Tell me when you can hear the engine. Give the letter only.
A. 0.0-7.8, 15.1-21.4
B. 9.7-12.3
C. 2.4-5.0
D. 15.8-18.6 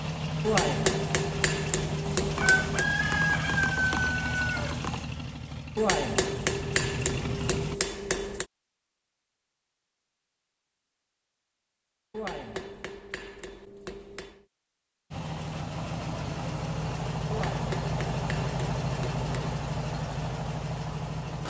A.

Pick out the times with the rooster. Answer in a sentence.
You can hear the rooster from 2.4 to 5.0 s.